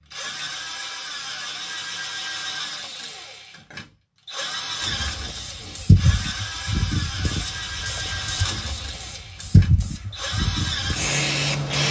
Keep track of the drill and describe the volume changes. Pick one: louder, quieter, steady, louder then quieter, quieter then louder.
steady.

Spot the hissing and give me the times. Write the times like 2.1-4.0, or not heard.
4.8-11.8.